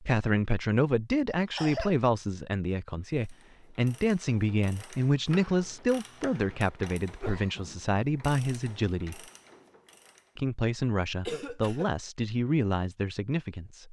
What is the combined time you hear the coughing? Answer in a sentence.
You can hear the coughing for 2 seconds altogether.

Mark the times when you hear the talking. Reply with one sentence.
The talking can be heard from 0.0 to 9.2 s and from 10.3 to 13.8 s.